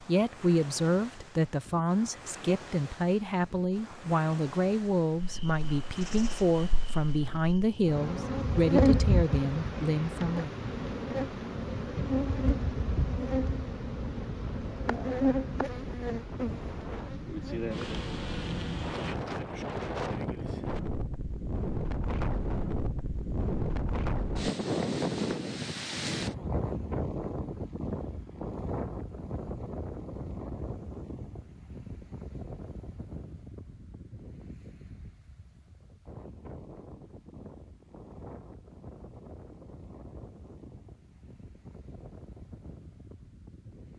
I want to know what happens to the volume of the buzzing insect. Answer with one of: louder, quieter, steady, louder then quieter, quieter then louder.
louder then quieter.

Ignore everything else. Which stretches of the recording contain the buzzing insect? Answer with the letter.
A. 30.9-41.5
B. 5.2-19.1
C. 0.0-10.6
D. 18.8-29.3
B.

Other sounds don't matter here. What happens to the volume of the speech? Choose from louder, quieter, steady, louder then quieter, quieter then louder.
steady.